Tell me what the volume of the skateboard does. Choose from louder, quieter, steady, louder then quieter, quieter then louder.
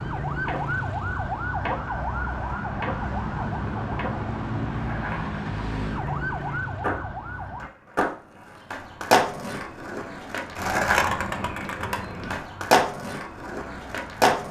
louder.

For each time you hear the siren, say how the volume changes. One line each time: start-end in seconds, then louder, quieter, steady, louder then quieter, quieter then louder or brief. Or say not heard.
0.0-7.7 steady
12.3-14.2 brief.